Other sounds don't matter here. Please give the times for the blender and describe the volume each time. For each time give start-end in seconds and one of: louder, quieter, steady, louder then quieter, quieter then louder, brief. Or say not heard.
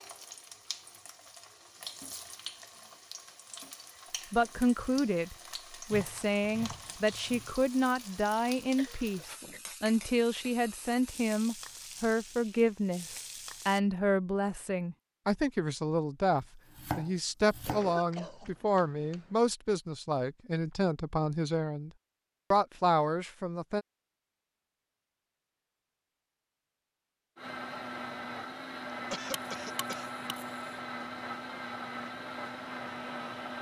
27.4-33.5 steady.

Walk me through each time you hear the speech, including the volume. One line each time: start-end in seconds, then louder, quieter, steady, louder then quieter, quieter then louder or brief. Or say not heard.
4.3-21.9 steady
22.5-23.9 brief.